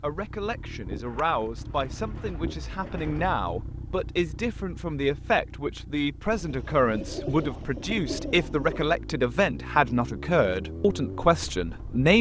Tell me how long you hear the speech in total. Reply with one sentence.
The speech can be heard for 12 seconds in total.